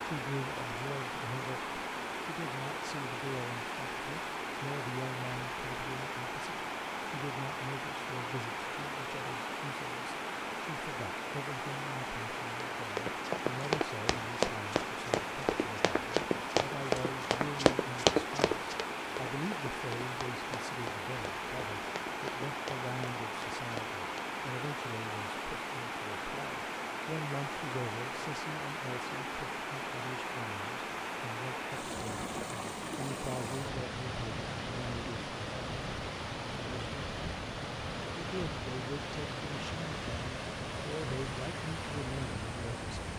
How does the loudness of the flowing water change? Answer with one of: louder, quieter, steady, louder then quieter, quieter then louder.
steady.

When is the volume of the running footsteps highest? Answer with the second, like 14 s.
18 s.